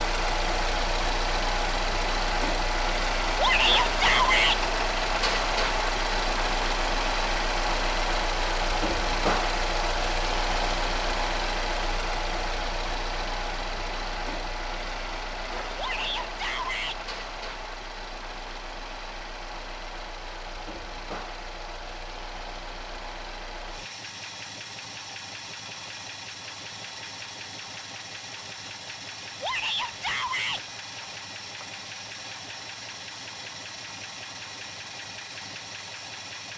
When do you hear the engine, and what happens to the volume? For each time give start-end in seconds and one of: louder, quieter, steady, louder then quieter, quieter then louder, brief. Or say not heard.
0.0-36.5 quieter.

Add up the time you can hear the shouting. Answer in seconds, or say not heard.
4 s.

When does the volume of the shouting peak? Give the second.
4 s.